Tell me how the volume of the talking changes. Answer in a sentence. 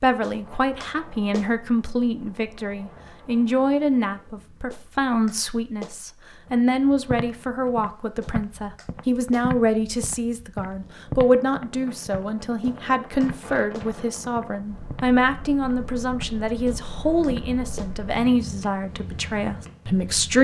The volume of the talking stays about the same.